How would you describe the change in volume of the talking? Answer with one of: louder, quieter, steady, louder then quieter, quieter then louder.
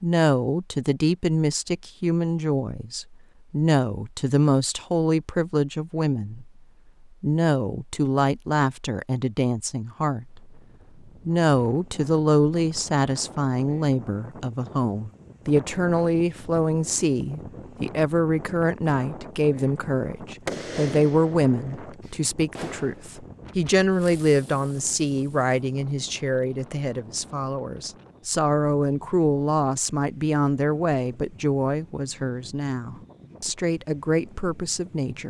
steady.